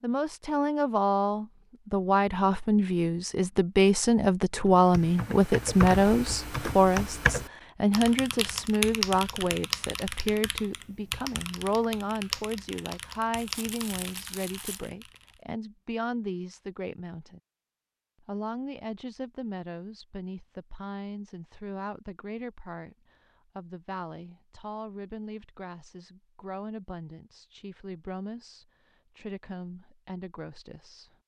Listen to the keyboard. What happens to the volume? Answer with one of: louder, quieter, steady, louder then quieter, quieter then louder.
quieter.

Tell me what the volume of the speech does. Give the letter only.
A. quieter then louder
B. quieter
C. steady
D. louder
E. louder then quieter
B.